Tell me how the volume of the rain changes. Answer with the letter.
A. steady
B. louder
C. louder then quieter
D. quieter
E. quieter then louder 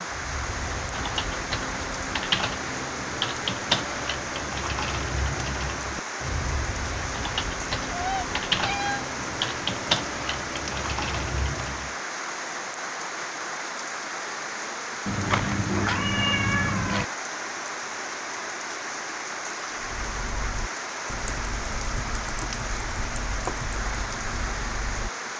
A.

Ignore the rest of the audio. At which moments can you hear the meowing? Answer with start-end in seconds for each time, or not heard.
7.9-9.1, 15.1-17.1.